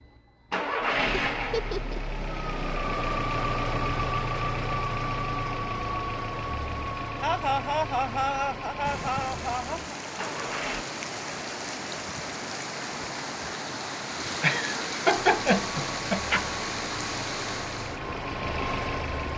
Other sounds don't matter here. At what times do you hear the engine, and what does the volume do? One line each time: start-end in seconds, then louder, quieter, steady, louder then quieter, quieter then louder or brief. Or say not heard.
0.0-10.8 quieter
15.2-19.3 louder.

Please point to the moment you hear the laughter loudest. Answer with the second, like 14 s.
15 s.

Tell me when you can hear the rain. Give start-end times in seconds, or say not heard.
8.8-19.3.